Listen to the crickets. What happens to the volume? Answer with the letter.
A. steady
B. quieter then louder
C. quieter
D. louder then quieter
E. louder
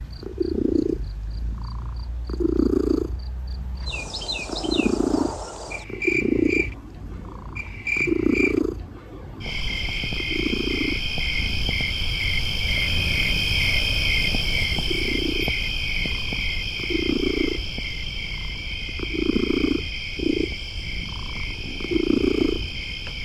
D.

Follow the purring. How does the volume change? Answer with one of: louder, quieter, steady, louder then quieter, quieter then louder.
quieter then louder.